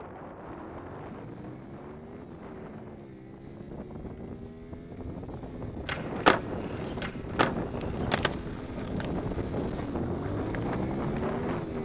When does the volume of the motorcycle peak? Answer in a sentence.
The volume of the motorcycle peaks at 11 seconds.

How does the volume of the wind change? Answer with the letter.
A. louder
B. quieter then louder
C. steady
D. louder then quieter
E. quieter
A.